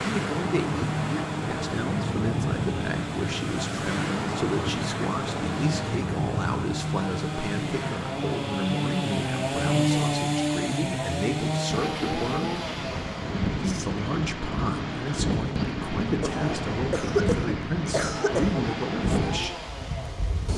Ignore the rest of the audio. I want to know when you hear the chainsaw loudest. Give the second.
10 s.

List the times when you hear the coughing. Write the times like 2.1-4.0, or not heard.
16.2-18.6.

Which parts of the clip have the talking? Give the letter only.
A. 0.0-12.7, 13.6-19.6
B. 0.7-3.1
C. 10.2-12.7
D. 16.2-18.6
A.